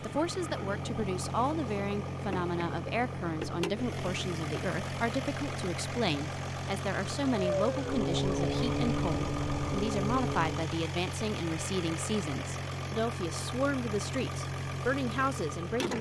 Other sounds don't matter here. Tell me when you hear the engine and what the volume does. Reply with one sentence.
The engine can be heard from 0.0 to 15.9 s, at a steady volume.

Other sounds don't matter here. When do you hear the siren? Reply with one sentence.
You can hear the siren from 7.3 to 10.8 s.